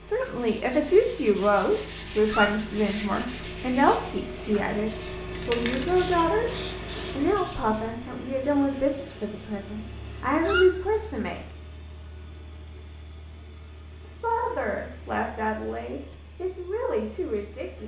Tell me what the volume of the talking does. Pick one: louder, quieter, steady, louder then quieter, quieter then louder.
quieter.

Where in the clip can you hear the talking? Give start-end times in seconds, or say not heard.
0.0-6.5, 7.2-11.4, 14.1-17.8.